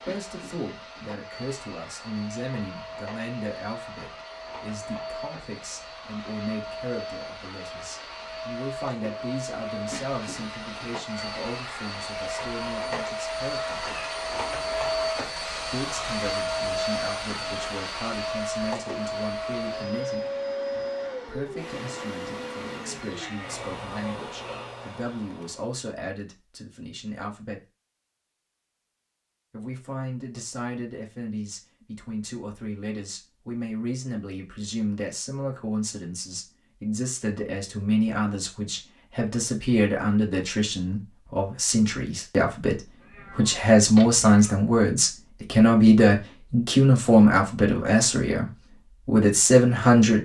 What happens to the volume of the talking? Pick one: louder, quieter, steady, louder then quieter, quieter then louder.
louder.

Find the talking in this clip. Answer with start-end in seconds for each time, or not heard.
0.0-13.9, 15.7-27.6, 29.5-50.2.